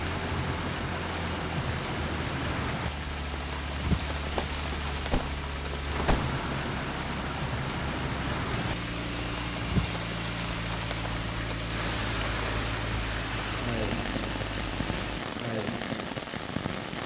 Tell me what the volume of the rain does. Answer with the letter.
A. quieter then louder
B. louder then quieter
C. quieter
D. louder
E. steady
E.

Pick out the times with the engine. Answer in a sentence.
You can hear the engine from 0.0 to 15.2 s.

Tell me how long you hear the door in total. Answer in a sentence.
The door can be heard for 2 seconds in total.